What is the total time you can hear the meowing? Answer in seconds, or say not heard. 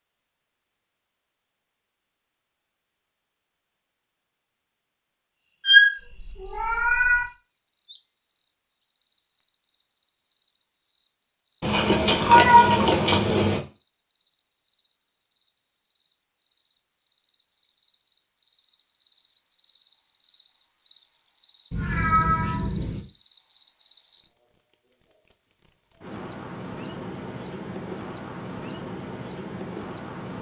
5 s.